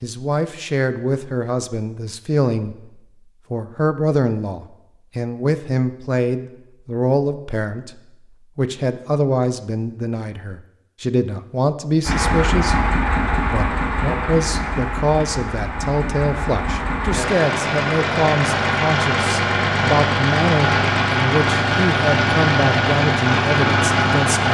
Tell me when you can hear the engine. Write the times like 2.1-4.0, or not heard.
12.1-24.5.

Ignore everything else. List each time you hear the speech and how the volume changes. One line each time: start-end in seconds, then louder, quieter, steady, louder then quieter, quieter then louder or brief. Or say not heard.
0.0-2.9 brief
3.5-24.5 steady.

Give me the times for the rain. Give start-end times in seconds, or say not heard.
not heard.